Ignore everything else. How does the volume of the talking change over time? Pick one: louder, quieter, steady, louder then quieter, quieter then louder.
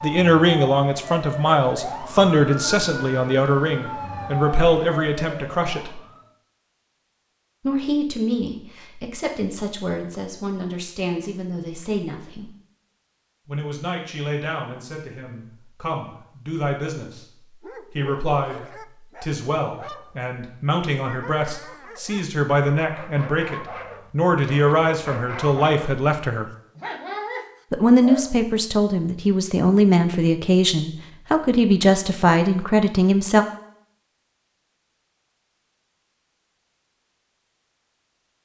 quieter then louder.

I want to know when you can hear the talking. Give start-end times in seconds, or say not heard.
0.0-6.0, 7.7-12.5, 13.4-17.2, 17.9-26.4, 27.7-33.5.